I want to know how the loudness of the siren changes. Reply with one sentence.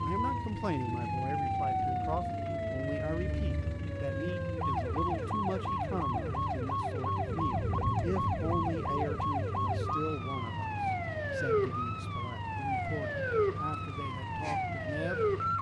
The loudness of the siren stays about the same.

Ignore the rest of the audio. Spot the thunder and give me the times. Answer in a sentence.
You can hear the thunder from 7.2 to 9.9 s.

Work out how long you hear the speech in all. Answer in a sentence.
The speech can be heard for 15 seconds in total.